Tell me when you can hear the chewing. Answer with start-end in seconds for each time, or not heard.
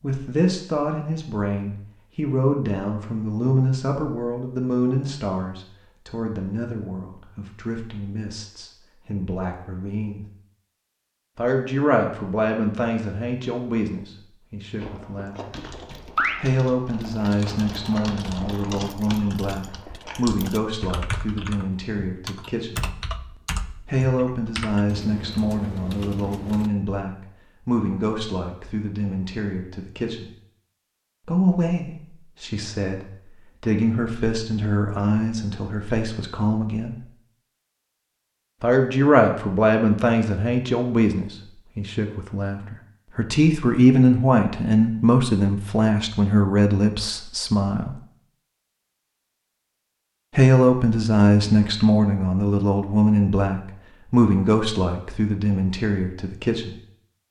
14.8-20.2.